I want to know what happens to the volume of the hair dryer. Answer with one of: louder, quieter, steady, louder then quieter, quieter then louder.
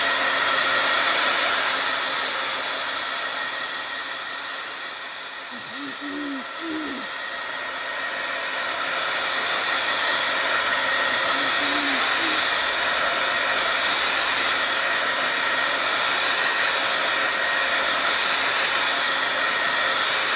quieter then louder.